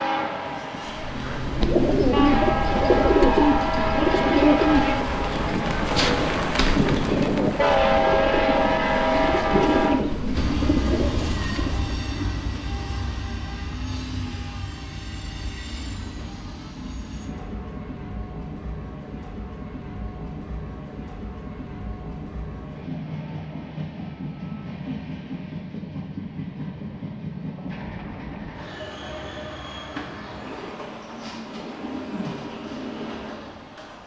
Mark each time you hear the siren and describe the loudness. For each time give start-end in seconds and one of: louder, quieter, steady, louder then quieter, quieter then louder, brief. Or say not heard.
not heard.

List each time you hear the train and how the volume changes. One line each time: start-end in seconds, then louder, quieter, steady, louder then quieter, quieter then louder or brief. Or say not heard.
0.0-34.0 quieter.